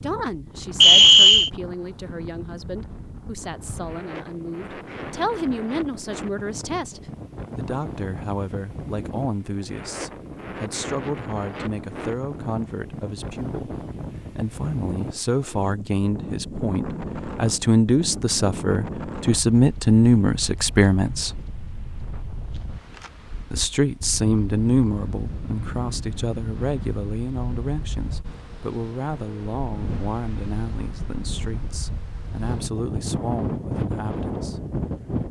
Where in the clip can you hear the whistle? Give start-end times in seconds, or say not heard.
0.8-1.5.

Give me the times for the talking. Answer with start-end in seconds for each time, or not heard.
0.0-13.8, 14.3-21.4, 23.4-34.6.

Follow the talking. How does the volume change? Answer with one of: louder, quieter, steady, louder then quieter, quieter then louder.
louder then quieter.